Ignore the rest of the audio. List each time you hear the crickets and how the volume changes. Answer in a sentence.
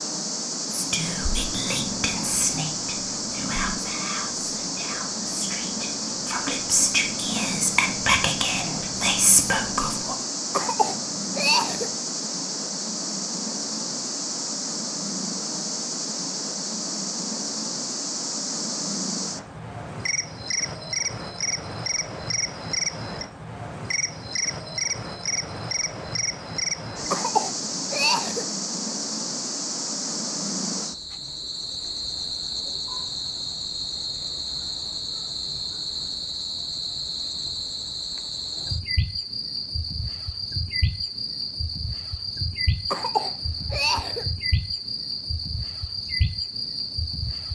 You can hear the crickets from 0.0 to 47.4 s, at a steady volume.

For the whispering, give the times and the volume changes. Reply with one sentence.
The whispering can be heard from 0.7 to 10.2 s, getting quieter then louder.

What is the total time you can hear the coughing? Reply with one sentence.
You can hear the coughing for 4 seconds altogether.